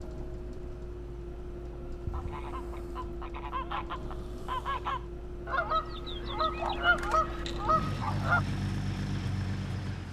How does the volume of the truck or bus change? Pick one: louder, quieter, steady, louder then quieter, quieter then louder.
louder.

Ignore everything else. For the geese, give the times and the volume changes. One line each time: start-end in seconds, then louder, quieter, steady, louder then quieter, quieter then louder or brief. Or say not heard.
2.0-8.4 louder.